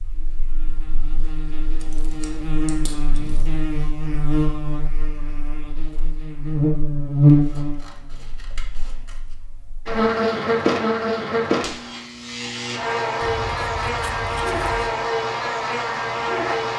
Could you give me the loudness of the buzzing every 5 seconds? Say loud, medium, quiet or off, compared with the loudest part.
medium, loud, loud, loud.